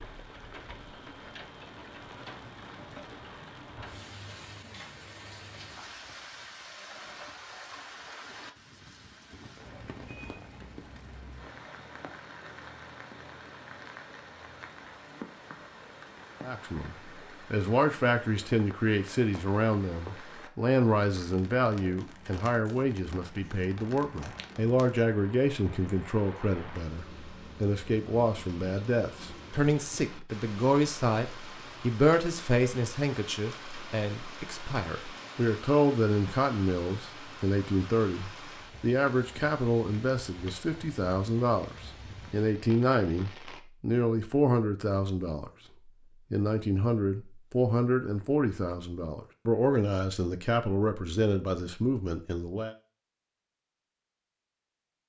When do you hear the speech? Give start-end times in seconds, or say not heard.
16.4-45.5, 46.3-52.8.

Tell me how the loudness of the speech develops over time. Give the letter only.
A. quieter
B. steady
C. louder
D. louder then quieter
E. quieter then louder
B.